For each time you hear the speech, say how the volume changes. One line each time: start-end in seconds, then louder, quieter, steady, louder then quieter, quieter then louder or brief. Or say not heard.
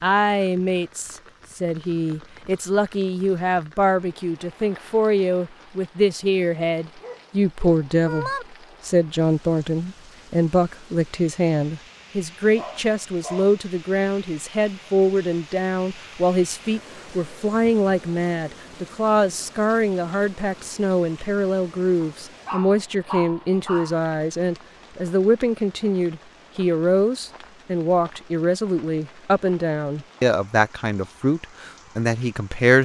0.0-32.8 steady.